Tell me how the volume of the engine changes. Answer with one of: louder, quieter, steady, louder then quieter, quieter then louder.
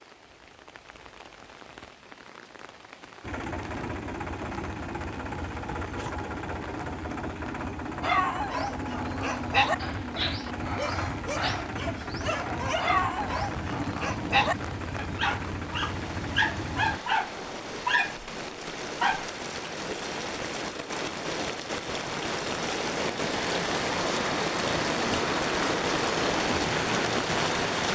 steady.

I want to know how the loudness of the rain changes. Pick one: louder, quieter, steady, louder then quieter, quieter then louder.
louder.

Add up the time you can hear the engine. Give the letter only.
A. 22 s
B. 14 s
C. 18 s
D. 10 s
B.